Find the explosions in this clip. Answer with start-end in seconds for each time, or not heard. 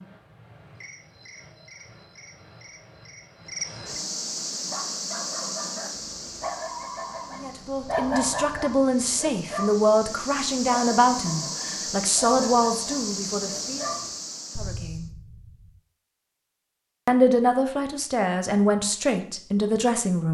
14.6-15.8.